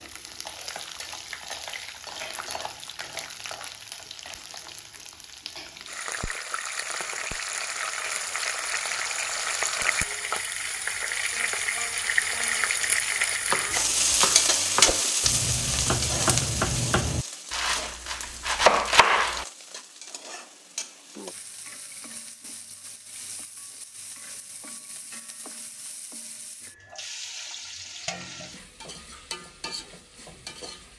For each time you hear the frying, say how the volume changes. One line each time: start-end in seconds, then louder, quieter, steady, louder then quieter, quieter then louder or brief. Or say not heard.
0.0-30.9 louder then quieter.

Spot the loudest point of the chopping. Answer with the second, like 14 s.
19 s.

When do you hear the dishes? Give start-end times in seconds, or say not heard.
not heard.